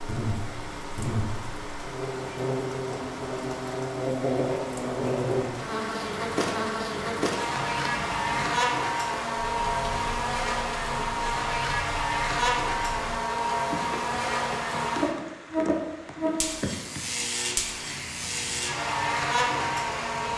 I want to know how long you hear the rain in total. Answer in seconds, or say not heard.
20 s.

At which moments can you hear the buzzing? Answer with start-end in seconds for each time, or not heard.
0.0-20.3.